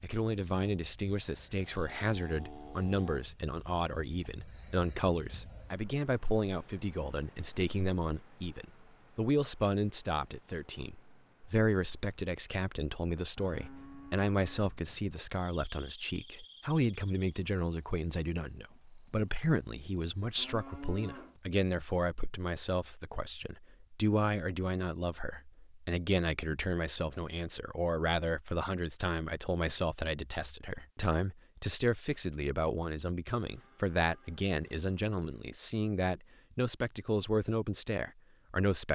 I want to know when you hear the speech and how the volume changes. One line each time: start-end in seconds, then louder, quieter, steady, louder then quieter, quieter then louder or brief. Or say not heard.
0.0-38.8 steady.